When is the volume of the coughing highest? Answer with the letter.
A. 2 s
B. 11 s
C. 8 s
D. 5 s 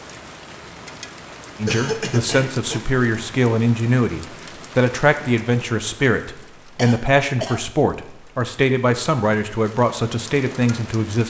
A.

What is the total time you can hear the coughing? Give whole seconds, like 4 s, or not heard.
2 s.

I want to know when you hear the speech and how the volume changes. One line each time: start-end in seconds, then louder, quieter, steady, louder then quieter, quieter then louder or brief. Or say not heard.
1.6-11.2 steady.